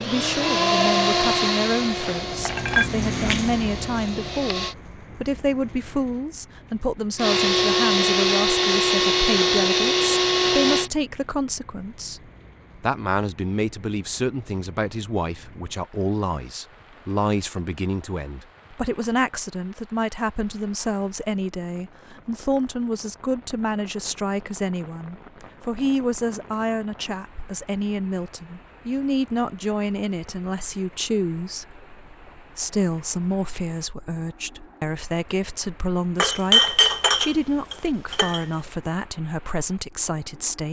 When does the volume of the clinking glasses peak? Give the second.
37 s.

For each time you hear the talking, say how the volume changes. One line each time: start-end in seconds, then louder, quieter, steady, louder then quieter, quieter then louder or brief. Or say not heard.
0.0-40.6 steady.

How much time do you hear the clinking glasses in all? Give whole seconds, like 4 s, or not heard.
3 s.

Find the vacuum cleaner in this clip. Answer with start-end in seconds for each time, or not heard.
0.0-4.8, 7.2-10.9.